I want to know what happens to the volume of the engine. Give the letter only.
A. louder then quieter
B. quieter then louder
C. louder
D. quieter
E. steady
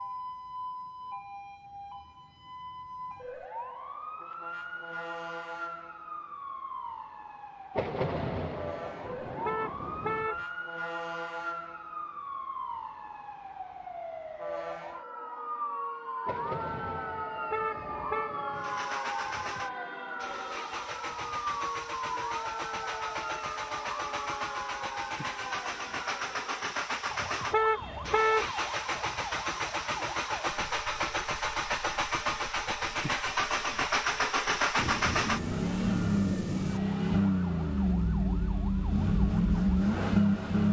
C.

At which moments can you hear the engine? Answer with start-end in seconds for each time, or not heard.
18.6-40.6.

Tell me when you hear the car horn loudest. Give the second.
28 s.